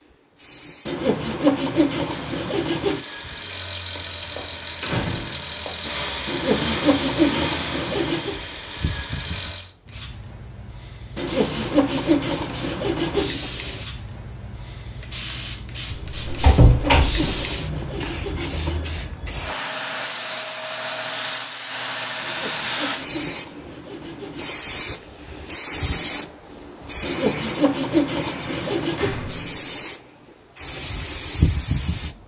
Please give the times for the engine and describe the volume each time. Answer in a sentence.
You can hear the engine from 2.1 to 9.8 s, getting louder then quieter.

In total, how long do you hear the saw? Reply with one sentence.
The saw can be heard for 14 seconds in total.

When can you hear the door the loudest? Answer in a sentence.
The loudest moment of the door is at 17 seconds.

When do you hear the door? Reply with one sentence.
The door can be heard from 4.0 to 6.2 s, from 15.8 to 17.4 s and from 28.9 to 29.8 s.